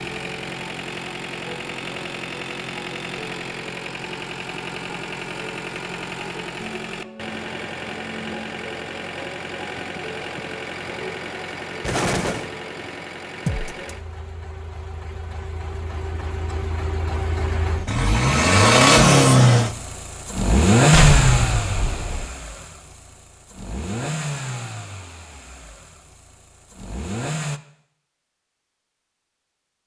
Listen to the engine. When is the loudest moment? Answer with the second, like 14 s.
19 s.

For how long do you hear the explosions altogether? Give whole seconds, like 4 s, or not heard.
2 s.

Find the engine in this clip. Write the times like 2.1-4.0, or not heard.
0.0-27.6.